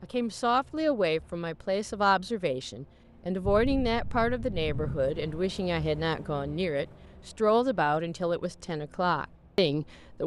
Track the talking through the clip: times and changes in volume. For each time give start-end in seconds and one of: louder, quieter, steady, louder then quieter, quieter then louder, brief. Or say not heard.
0.0-10.2 steady.